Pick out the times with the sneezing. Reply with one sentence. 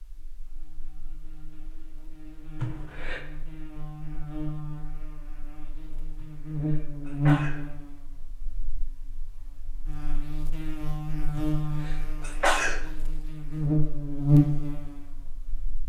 You can hear the sneezing from 2.5 to 3.2 s, from 6.2 to 7.6 s and from 11.3 to 12.8 s.